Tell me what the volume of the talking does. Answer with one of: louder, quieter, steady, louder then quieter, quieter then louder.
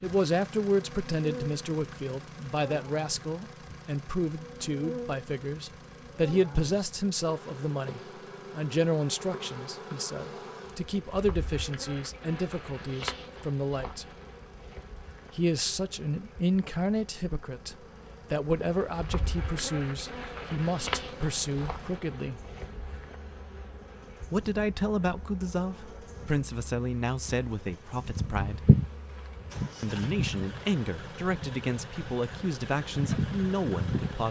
steady.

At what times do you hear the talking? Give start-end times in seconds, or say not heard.
0.0-14.1, 15.3-22.4, 24.3-28.6, 29.8-34.2.